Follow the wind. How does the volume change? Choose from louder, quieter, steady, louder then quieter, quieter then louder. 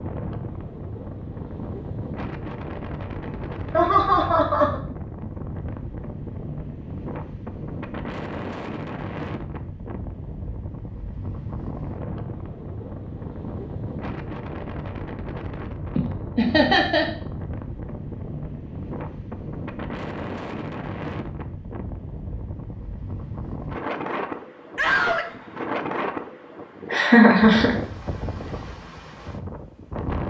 steady.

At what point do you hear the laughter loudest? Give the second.
27 s.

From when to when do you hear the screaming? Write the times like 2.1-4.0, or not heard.
24.8-25.3.